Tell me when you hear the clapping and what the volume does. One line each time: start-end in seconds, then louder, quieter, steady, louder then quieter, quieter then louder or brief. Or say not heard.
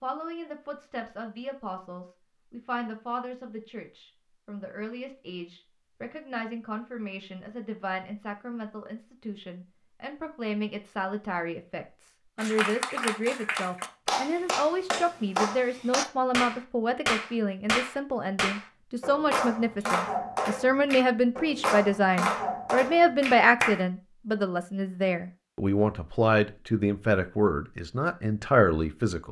12.3-23.9 steady.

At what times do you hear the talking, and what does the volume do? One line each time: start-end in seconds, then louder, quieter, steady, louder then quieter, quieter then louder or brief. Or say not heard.
0.0-29.2 louder.